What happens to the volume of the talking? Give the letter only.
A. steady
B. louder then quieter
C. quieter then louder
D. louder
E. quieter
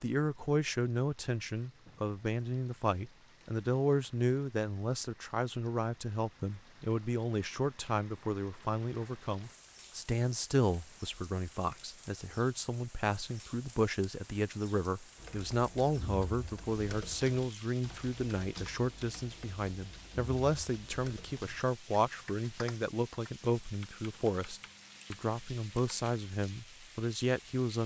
A.